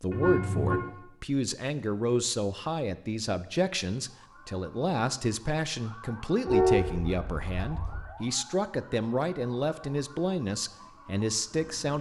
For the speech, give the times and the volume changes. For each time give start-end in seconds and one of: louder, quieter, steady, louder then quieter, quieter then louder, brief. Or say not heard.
0.0-11.9 steady.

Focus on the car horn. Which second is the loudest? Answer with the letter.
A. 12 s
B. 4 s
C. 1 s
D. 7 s
D.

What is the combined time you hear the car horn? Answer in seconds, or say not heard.
2 s.